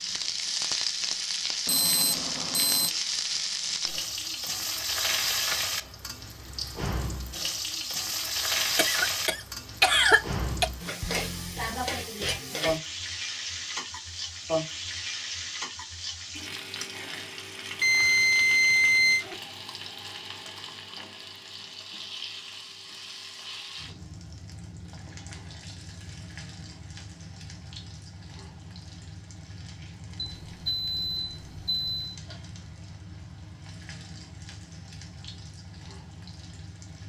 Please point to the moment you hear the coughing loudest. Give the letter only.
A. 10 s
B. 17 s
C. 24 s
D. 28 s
A.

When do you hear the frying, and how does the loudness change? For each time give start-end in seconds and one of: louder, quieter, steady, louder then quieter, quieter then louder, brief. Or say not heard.
0.0-37.0 quieter.